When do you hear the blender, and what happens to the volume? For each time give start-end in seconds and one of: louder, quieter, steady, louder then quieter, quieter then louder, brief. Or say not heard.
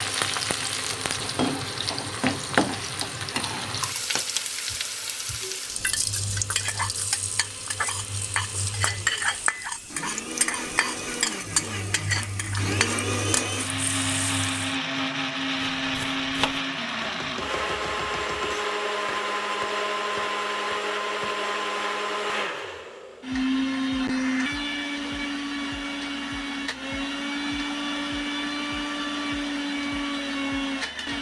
0.0-31.1 louder.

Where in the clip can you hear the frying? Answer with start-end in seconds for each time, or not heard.
0.0-14.8.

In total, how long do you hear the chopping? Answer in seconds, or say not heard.
6 s.